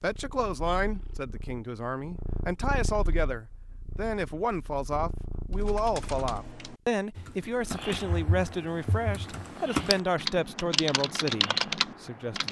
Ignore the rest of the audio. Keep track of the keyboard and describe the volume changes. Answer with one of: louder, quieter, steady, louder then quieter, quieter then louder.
louder.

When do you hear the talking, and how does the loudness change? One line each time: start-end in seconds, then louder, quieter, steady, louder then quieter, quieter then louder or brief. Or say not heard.
0.0-12.4 steady.